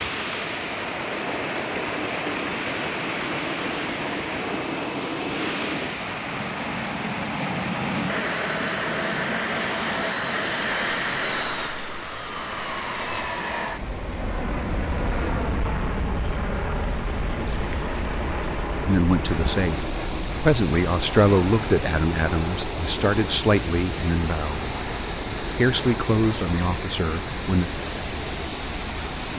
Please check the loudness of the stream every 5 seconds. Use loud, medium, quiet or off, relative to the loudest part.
loud, loud, medium, medium, loud, loud.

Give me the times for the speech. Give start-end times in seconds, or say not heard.
18.8-24.6, 25.6-27.7.